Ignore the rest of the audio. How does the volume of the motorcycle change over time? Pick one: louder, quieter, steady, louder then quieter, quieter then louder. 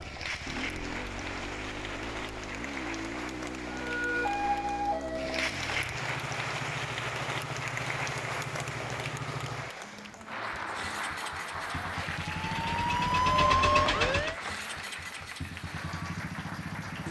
steady.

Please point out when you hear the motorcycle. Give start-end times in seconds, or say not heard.
0.0-17.0.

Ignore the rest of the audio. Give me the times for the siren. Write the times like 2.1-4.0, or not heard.
3.7-5.3, 11.4-14.3.